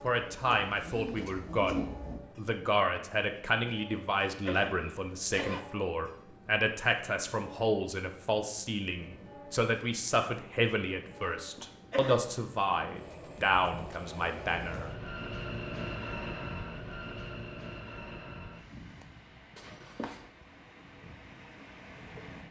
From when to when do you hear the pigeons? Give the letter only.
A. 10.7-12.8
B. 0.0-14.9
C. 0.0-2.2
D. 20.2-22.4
C.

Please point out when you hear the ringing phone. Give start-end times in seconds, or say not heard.
not heard.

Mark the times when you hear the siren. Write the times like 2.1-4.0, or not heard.
not heard.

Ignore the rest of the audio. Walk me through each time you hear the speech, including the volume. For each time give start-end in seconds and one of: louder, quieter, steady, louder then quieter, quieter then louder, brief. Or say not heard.
0.0-14.9 steady.